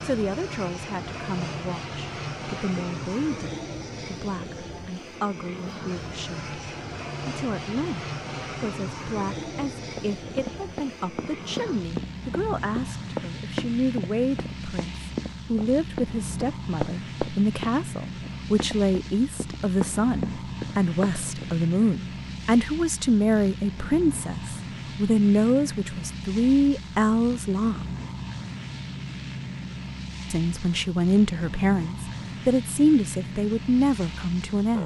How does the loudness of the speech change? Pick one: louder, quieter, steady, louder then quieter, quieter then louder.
louder.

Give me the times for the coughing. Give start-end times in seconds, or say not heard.
not heard.